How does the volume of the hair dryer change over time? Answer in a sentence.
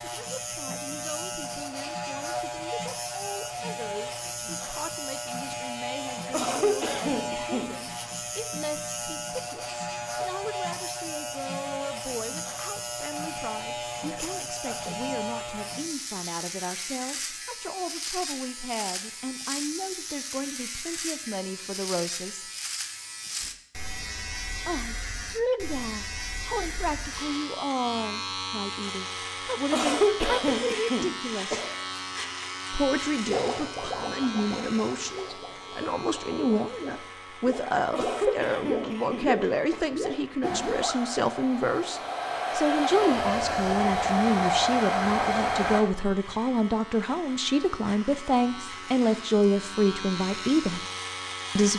The volume of the hair dryer goes up.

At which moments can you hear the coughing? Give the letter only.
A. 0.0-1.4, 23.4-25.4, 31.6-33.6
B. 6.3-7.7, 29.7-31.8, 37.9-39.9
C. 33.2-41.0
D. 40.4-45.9
B.